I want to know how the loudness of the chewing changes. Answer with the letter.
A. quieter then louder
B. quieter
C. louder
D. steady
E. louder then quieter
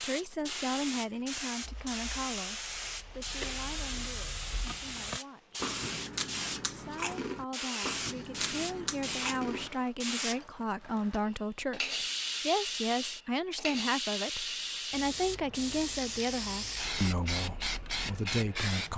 C.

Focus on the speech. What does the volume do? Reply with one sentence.
The loudness of the speech goes down, then up.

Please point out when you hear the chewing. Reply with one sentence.
The chewing can be heard from 0.3 to 9.7 s.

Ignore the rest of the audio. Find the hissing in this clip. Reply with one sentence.
You can hear the hissing from 0.0 to 18.9 s.